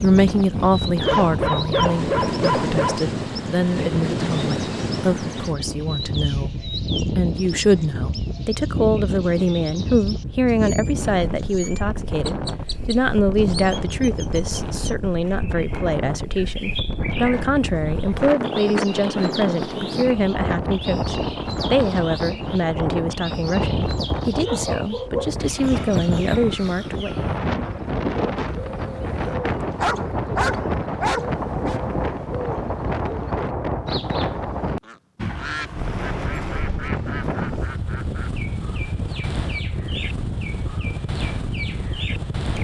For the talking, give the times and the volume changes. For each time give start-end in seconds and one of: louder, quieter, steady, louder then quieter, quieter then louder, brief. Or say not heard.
0.0-27.2 steady.